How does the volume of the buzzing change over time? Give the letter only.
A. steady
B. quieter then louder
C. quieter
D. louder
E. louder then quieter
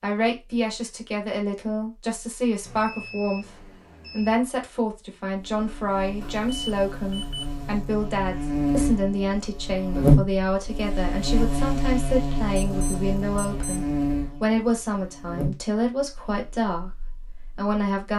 E.